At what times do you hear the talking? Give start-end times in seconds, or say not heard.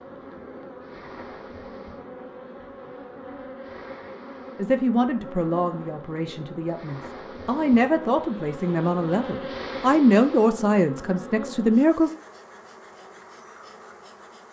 4.5-12.1.